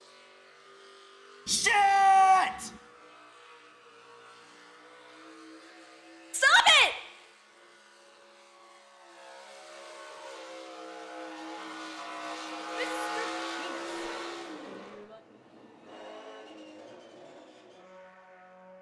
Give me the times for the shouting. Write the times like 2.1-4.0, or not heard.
1.4-2.7, 6.3-6.9, 12.8-13.8, 14.7-15.2.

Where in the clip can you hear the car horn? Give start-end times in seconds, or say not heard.
not heard.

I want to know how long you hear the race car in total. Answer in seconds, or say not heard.
19 s.